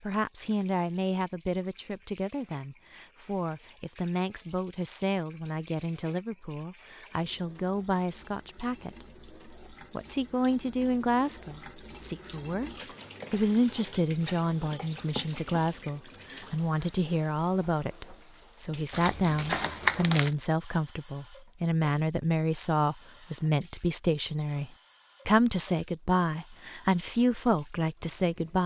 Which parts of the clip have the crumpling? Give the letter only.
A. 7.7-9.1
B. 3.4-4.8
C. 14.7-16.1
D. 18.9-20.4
D.